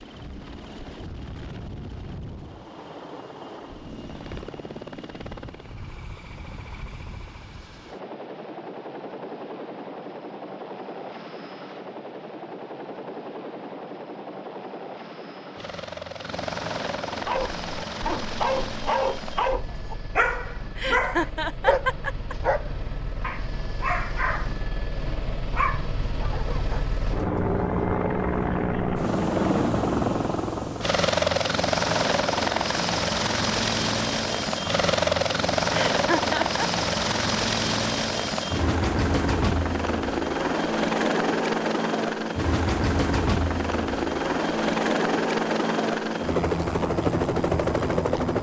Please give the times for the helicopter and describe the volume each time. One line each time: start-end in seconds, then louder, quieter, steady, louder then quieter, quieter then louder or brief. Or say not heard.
0.0-48.3 louder.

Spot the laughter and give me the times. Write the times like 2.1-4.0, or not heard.
20.8-22.4, 35.7-36.6.